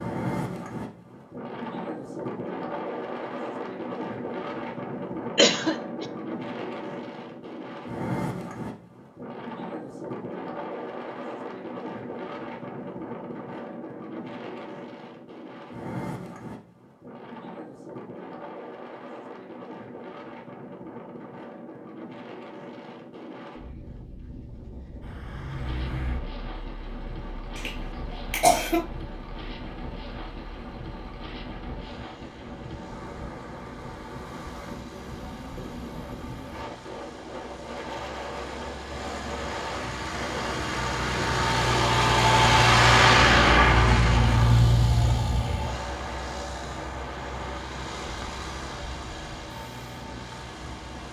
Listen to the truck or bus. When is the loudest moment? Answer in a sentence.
The loudest moment of the truck or bus is at 43 seconds.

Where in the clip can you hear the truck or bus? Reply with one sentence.
The truck or bus can be heard from 25.0 to 51.0 s.